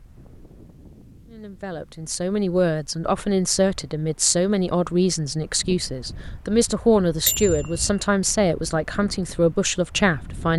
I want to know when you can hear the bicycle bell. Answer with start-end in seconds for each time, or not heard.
7.2-8.1.